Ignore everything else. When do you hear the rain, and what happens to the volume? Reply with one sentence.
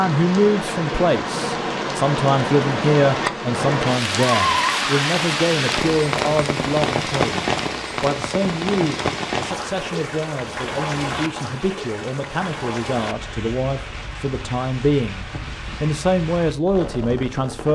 The rain can be heard from 0.0 to 17.7 s, getting quieter.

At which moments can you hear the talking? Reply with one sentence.
The talking can be heard from 0.0 to 17.7 s.